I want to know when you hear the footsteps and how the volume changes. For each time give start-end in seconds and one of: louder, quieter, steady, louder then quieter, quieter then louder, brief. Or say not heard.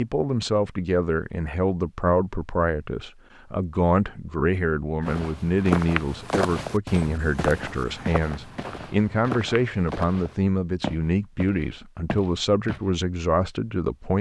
5.0-12.8 quieter.